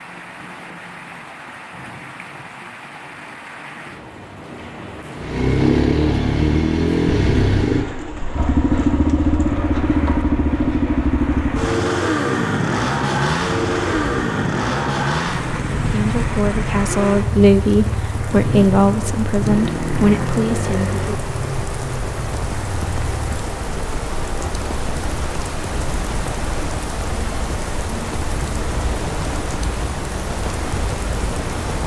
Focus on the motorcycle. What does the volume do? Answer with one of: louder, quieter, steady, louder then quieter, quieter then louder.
quieter.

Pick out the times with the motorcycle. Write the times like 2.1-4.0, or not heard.
5.2-23.4.